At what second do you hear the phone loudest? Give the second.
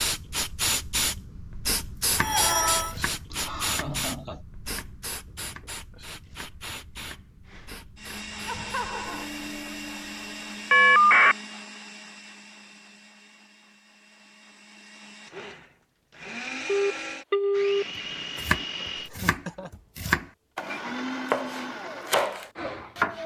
11 s.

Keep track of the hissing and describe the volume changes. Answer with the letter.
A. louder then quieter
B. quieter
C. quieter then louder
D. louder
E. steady
B.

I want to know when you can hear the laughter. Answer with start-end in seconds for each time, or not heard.
3.3-4.5, 8.4-9.3, 19.1-19.7.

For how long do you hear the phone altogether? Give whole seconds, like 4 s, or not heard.
3 s.